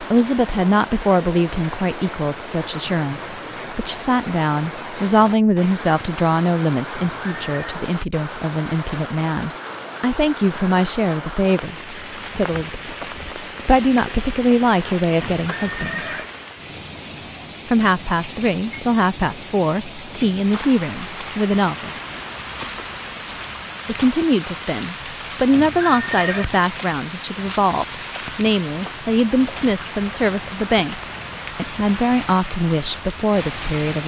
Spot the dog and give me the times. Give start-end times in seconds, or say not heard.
not heard.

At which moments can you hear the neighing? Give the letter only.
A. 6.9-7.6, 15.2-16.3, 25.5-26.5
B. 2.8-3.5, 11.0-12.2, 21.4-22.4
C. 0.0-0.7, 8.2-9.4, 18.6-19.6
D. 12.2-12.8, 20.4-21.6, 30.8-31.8
A.